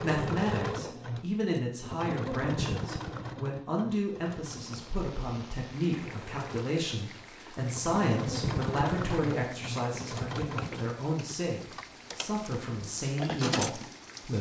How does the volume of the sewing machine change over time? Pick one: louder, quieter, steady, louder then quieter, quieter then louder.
quieter then louder.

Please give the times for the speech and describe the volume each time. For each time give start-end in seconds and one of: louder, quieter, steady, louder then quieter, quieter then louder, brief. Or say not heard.
0.0-14.3 steady.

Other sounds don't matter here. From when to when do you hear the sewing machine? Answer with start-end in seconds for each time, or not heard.
0.0-14.3.